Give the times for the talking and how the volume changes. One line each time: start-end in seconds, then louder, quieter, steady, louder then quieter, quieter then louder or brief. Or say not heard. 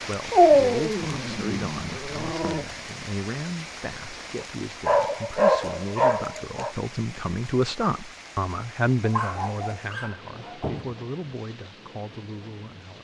0.0-12.9 louder then quieter.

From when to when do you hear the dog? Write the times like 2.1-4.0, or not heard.
0.3-2.6, 4.4-6.8, 9.0-10.9.